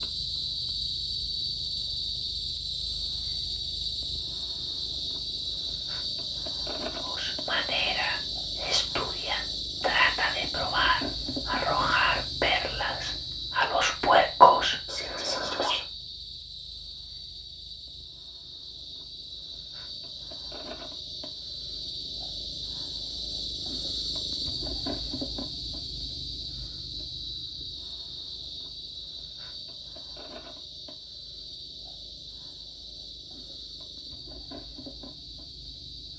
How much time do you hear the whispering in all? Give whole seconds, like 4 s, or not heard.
9 s.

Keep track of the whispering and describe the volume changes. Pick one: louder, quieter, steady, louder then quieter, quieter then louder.
louder.